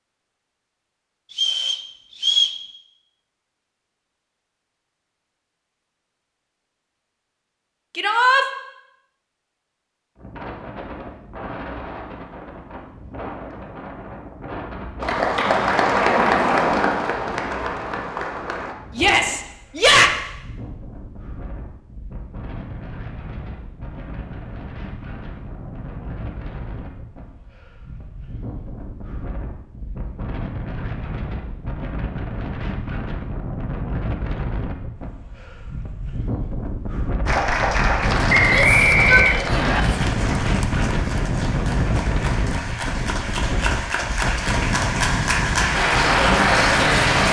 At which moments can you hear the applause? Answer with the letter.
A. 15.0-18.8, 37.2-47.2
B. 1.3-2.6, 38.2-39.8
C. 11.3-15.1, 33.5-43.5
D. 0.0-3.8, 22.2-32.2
A.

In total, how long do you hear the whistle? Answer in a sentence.
The whistle can be heard for 3 seconds in total.